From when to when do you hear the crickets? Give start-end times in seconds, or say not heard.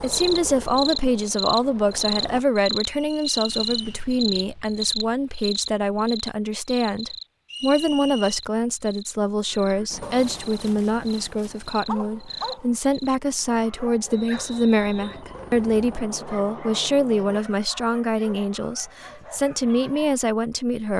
0.0-13.2.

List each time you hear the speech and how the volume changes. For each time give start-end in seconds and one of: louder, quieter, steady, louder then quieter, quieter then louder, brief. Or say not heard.
0.0-20.9 steady.